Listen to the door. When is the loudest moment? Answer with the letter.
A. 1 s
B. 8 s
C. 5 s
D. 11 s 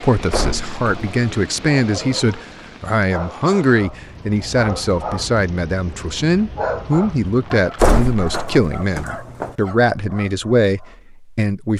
B.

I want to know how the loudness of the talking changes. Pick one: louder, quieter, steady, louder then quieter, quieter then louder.
steady.